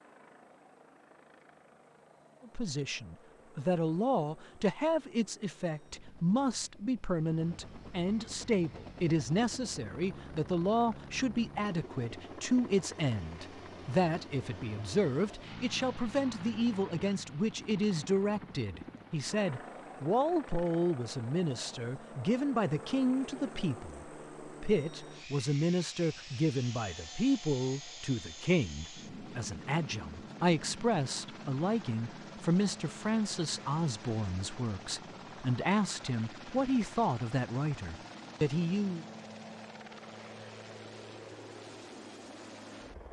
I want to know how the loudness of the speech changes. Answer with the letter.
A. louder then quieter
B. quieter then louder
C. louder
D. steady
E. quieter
D.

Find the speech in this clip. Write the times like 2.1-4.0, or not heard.
2.5-39.0.